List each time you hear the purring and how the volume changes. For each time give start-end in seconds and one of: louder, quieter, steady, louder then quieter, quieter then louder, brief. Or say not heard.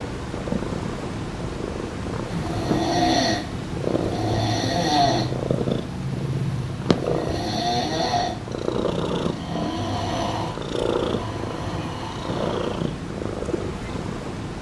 0.0-14.5 steady.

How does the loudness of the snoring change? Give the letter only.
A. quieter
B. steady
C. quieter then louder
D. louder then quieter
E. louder
A.